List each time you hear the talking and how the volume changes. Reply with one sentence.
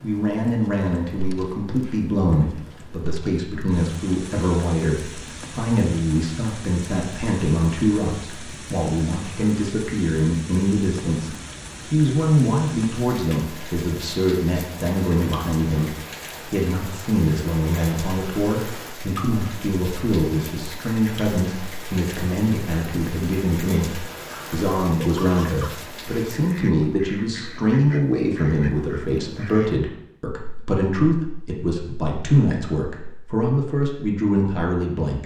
The talking can be heard from 0.0 to 35.2 s, at a steady volume.